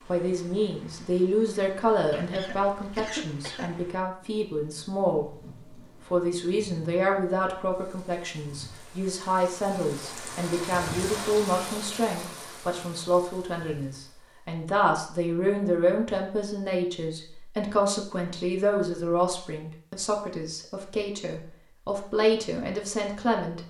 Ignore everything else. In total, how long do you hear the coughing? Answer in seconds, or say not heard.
2 s.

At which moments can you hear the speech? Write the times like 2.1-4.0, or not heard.
0.1-5.3, 6.0-23.6.